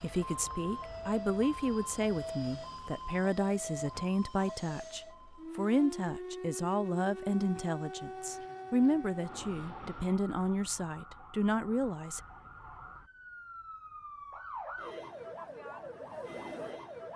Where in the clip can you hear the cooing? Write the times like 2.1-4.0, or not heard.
not heard.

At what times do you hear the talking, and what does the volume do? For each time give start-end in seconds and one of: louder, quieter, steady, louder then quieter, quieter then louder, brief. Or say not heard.
0.0-12.2 steady.